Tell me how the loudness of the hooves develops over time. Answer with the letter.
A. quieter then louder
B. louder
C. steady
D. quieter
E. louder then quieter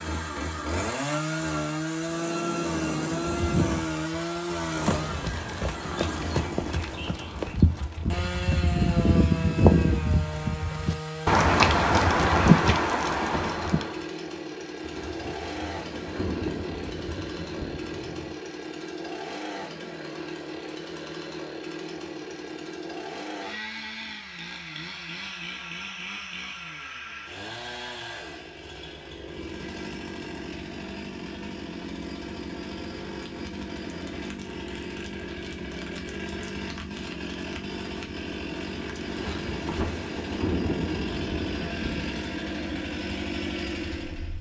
B.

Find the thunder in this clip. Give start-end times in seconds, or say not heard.
2.1-3.8, 14.8-18.4, 39.0-42.3.